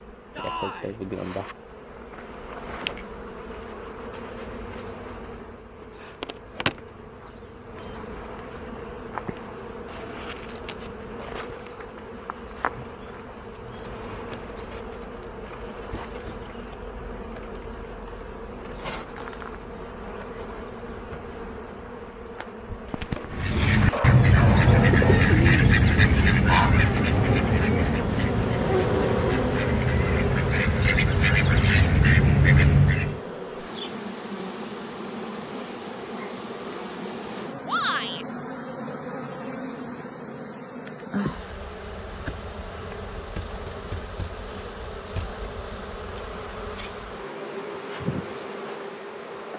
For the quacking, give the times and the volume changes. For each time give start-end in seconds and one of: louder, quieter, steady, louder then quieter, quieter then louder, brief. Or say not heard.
23.3-33.2 quieter then louder.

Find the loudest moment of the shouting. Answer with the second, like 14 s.
38 s.